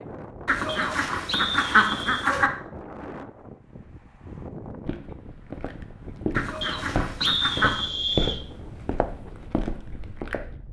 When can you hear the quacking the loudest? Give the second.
2 s.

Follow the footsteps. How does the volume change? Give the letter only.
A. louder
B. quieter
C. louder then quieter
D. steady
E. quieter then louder
C.